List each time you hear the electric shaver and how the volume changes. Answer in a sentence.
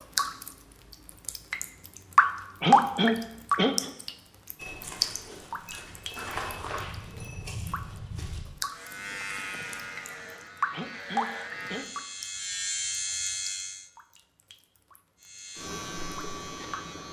The electric shaver can be heard from 8.7 to 13.9 s, getting quieter then louder; and briefly from 15.2 to 17.0 s.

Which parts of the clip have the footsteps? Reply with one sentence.
The footsteps can be heard from 4.5 to 8.4 s.